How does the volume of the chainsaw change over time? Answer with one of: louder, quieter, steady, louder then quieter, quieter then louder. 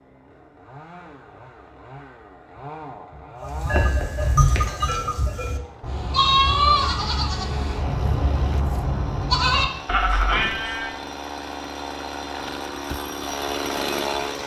louder.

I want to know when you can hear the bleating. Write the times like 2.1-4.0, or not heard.
3.4-10.9.